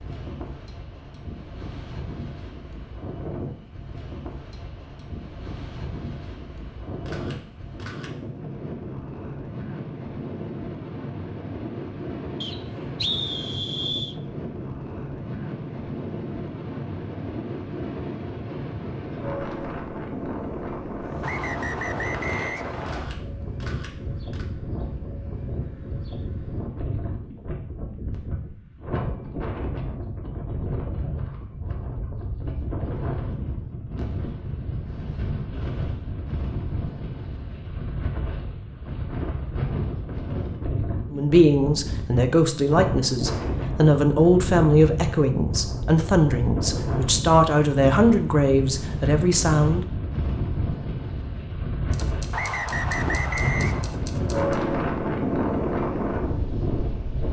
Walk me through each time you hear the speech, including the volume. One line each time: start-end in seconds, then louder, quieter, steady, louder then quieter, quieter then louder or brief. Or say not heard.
41.1-49.9 steady.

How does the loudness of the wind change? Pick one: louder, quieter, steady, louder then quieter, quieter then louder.
louder.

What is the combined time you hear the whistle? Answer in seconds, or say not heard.
5 s.